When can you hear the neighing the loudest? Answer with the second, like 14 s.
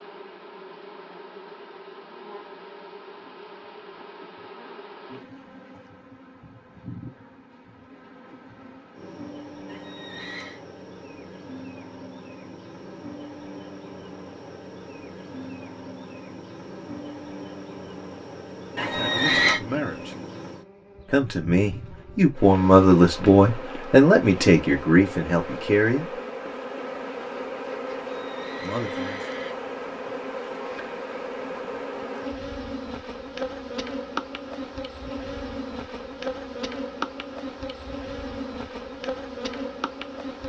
19 s.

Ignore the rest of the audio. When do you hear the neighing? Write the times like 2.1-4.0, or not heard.
9.7-10.6, 18.8-19.6, 28.1-29.6.